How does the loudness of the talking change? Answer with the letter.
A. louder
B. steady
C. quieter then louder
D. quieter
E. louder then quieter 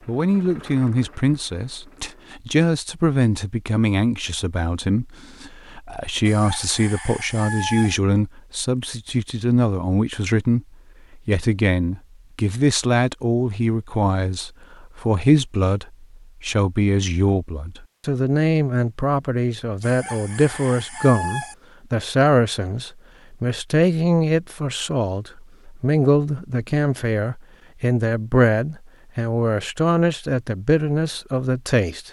B.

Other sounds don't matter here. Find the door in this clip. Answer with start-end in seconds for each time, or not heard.
not heard.